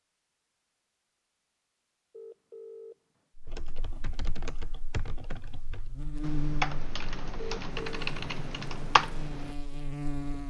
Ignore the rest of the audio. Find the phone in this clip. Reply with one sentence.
The phone can be heard from 2.1 to 3.0 s and from 7.3 to 8.0 s.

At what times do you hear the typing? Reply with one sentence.
The typing can be heard from 3.5 to 9.6 s.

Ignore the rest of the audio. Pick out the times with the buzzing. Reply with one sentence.
You can hear the buzzing from 3.4 to 10.4 s.